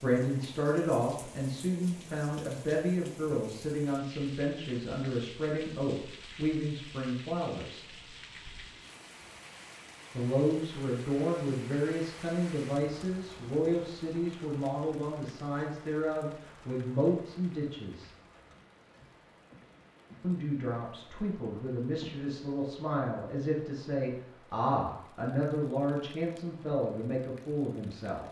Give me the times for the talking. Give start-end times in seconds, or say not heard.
0.0-7.8, 10.2-18.1, 20.2-28.2.